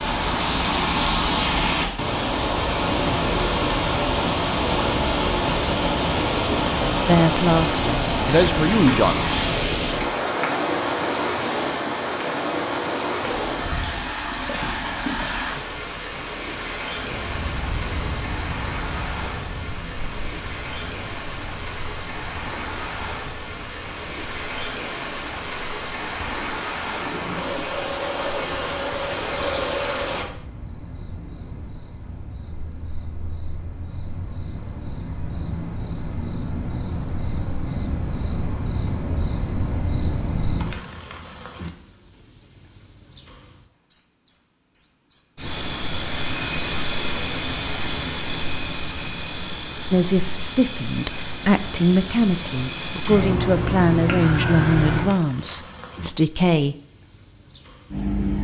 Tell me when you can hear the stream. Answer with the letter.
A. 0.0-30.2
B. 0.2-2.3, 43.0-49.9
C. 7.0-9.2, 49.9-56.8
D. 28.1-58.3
A.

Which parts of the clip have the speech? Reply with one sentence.
The speech can be heard from 7.0 to 9.2 s and from 49.9 to 56.8 s.